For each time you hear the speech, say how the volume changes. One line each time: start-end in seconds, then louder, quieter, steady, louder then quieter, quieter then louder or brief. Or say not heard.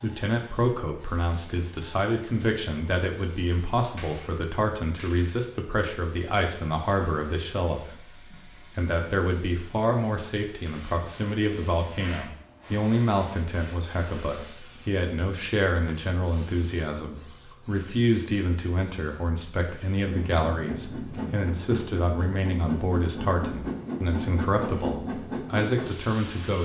0.0-26.6 steady.